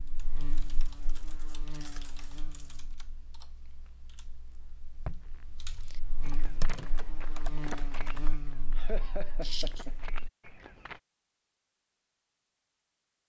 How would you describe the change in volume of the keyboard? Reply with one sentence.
The loudness of the keyboard goes down, then up.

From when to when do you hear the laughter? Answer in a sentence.
You can hear the laughter from 8.8 to 9.9 s.